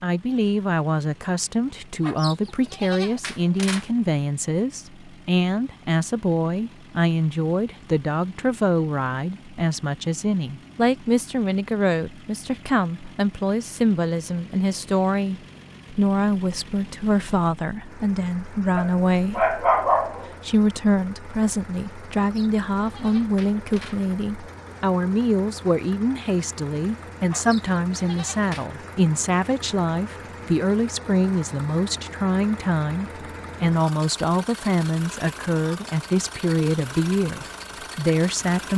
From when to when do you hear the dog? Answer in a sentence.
You can hear the dog from 18.8 to 20.3 s.